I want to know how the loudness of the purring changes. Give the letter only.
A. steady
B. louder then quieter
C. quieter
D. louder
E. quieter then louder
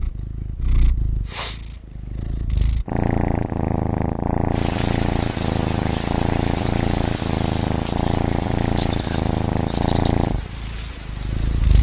D.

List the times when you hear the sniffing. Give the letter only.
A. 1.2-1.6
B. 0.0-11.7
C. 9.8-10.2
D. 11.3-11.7
A.